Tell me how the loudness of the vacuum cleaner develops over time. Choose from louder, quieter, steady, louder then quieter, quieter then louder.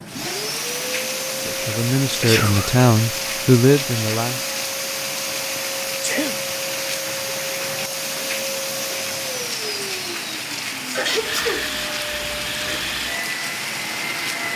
steady.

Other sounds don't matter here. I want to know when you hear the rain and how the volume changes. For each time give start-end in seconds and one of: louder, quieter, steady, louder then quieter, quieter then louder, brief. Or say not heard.
0.0-14.5 steady.